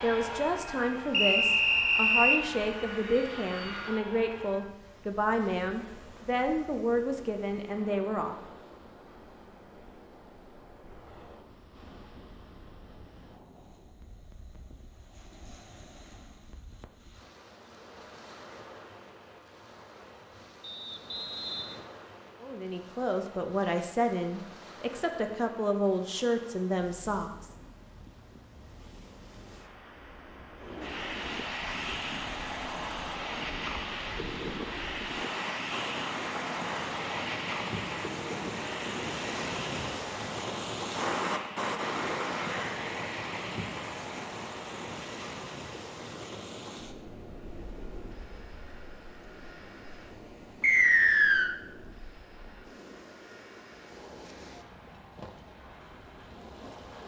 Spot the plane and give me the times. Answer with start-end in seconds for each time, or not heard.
0.0-4.8, 30.6-57.0.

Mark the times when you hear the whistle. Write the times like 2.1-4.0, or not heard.
1.1-2.4, 20.6-21.9, 50.6-51.5.